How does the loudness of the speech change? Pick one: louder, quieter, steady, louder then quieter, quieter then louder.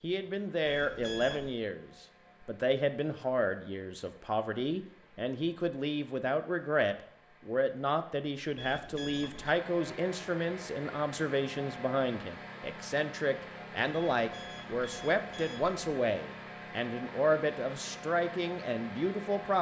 steady.